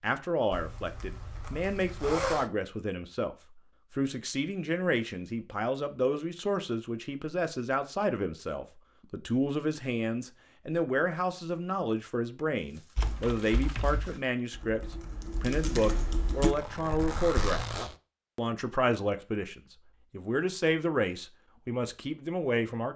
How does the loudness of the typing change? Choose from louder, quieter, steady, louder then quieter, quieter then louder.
quieter then louder.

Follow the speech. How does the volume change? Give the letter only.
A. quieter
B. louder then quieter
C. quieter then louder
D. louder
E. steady
E.